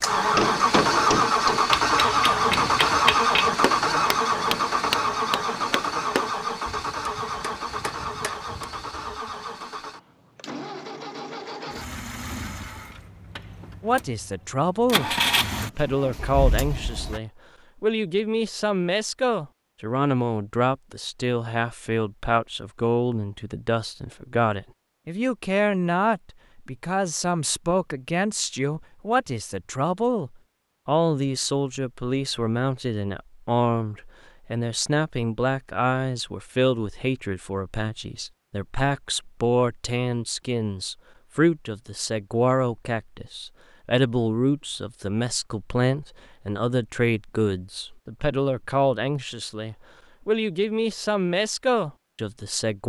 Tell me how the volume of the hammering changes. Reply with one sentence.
The loudness of the hammering goes down.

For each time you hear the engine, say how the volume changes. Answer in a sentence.
The engine can be heard from 0.0 to 17.2 s, getting quieter then louder.